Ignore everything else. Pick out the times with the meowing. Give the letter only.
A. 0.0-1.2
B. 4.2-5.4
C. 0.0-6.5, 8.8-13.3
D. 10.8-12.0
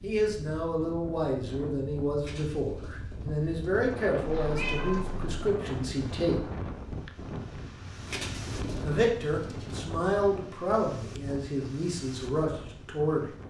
B.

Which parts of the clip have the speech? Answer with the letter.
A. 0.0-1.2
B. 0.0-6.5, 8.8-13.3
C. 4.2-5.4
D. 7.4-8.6
B.